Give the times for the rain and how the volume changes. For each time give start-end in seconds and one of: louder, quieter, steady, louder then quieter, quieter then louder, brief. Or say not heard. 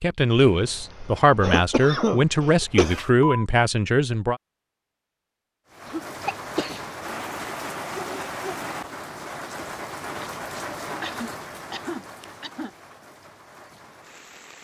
5.7-14.5 quieter.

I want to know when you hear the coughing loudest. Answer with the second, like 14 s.
2 s.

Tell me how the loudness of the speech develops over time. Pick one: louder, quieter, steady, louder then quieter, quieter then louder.
steady.